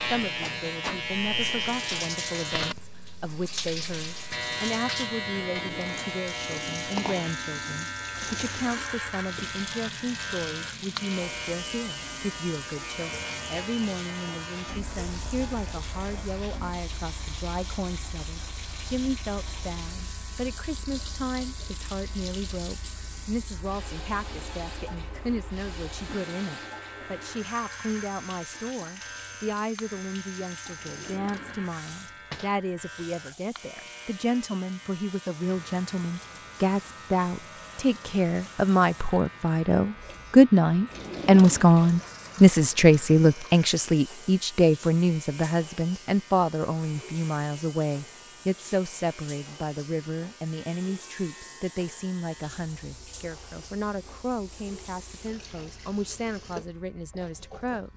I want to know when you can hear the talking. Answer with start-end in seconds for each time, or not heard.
0.0-57.9.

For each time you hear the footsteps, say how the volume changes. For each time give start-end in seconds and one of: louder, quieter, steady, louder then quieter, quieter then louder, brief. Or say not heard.
not heard.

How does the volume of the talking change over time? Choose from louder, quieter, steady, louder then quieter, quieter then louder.
louder then quieter.